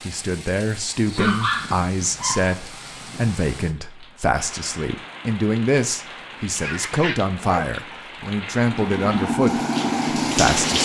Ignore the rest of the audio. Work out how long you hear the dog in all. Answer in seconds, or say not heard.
3 s.